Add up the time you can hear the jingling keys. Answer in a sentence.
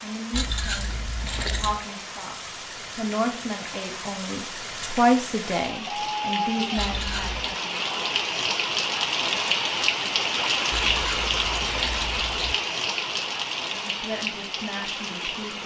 The jingling keys can be heard for 4 seconds in total.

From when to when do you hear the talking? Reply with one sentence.
The talking can be heard from 0.0 to 8.0 s and from 13.7 to 15.6 s.